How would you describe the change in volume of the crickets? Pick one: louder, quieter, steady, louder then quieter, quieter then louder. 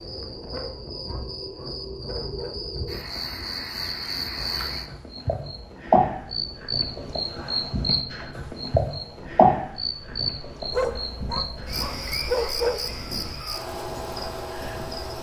louder then quieter.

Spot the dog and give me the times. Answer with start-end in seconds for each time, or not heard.
0.5-2.8, 10.7-12.8.